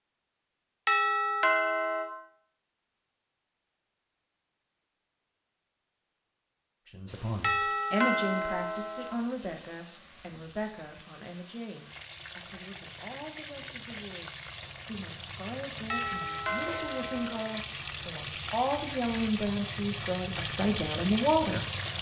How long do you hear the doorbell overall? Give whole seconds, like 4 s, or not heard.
5 s.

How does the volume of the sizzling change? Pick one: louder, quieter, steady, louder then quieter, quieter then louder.
louder.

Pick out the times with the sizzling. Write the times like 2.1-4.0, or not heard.
7.0-21.9.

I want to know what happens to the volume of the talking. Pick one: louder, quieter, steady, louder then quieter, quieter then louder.
quieter then louder.